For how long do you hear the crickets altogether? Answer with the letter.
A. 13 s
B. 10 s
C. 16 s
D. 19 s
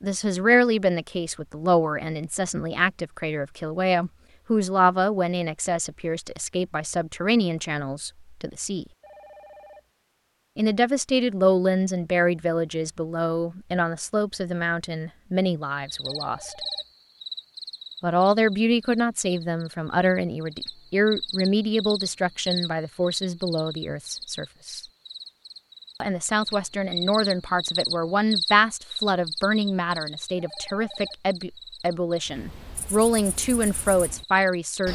D.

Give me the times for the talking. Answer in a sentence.
The talking can be heard from 0.0 to 8.8 s, from 10.6 to 16.6 s, from 18.0 to 24.8 s and from 26.0 to 34.9 s.